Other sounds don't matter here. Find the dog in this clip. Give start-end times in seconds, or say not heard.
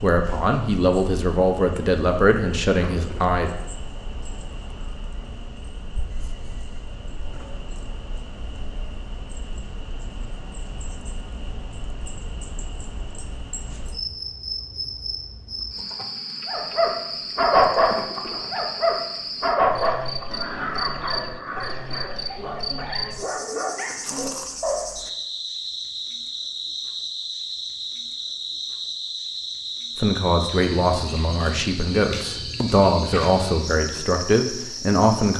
16.4-24.9.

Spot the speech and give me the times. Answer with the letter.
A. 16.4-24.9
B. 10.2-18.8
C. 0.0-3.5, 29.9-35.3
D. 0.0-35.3
C.